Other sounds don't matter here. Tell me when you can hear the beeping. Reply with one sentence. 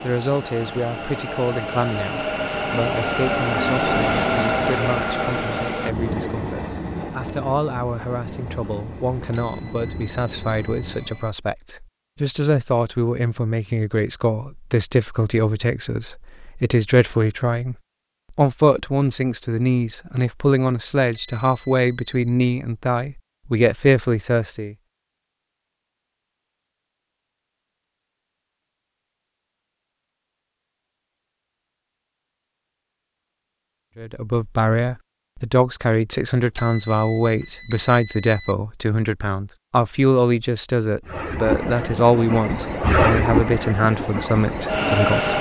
The beeping can be heard from 9.3 to 11.3 s, from 21.1 to 22.4 s and from 36.5 to 38.5 s.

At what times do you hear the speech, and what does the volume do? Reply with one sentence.
The speech can be heard from 0.0 to 24.8 s, getting louder; and from 34.0 to 45.3 s, at a steady volume.